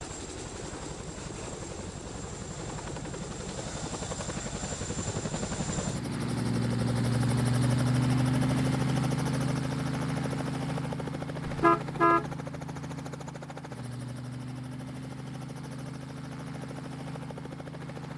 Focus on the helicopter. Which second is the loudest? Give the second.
8 s.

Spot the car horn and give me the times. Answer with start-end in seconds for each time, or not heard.
11.4-12.2.